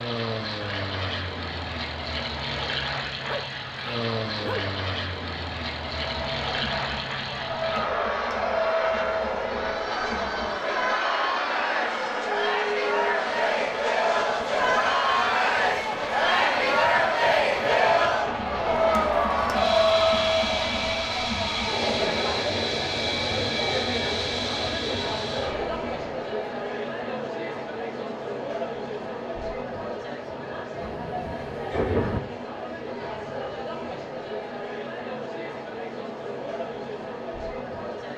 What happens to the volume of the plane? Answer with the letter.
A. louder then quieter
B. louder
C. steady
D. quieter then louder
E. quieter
C.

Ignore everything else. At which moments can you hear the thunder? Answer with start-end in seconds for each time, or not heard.
30.8-32.2.